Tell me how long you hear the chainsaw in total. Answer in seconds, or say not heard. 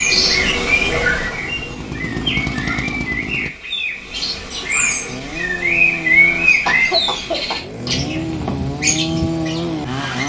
9 s.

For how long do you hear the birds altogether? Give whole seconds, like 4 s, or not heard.
10 s.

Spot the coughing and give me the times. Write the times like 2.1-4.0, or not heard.
6.2-7.6.